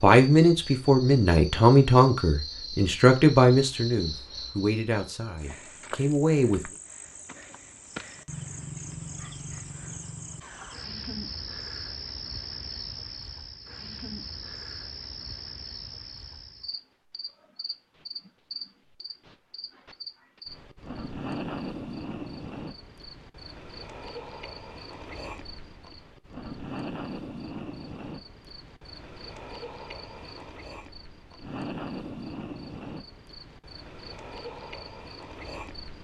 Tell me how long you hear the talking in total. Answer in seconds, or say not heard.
7 s.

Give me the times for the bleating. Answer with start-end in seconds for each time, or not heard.
not heard.